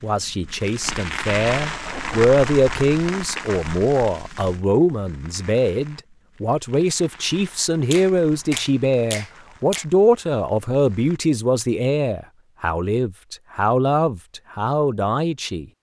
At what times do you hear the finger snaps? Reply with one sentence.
You can hear the finger snaps from 7.9 to 9.8 s.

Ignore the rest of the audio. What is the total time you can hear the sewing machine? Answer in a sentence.
The sewing machine can't be heard in this clip.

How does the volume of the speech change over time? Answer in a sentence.
The loudness of the speech stays about the same.